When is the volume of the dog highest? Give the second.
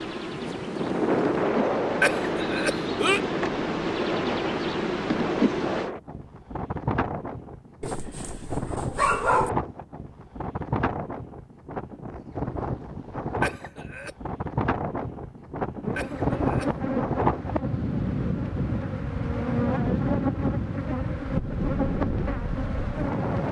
9 s.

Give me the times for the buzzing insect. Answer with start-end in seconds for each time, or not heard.
0.0-5.9, 15.8-23.4.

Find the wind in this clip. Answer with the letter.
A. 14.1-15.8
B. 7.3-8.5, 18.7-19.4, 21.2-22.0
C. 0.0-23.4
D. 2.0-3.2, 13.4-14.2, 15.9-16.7
C.